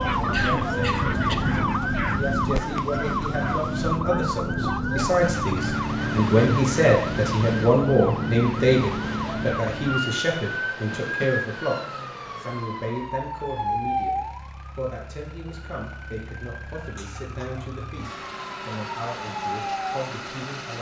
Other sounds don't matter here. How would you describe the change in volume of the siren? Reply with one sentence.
The volume of the siren goes down.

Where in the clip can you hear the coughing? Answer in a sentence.
The coughing can be heard from 0.3 to 1.6 s, from 11.0 to 11.4 s and from 16.9 to 17.6 s.